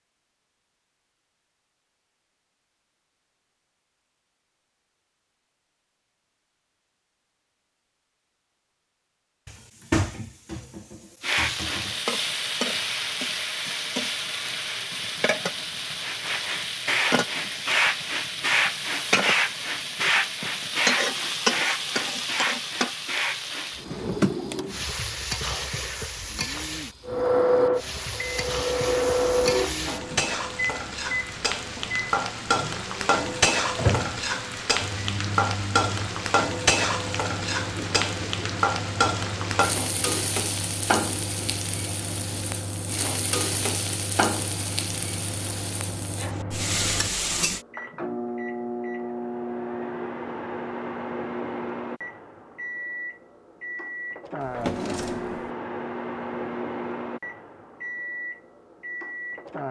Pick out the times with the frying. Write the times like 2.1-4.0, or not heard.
11.2-47.6.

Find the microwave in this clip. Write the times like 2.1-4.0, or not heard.
27.1-59.6.